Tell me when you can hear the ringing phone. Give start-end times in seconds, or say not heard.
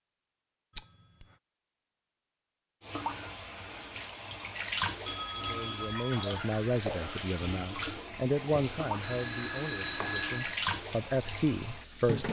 0.8-1.4, 5.0-6.3, 8.6-10.6.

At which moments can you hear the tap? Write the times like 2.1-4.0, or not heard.
2.8-12.2.